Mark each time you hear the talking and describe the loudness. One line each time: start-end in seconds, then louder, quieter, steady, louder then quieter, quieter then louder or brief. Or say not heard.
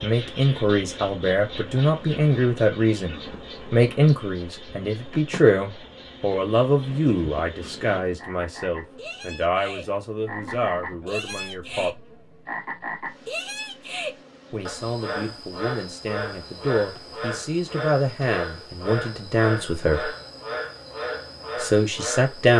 0.0-11.9 quieter
14.5-20.1 louder
21.6-22.5 brief.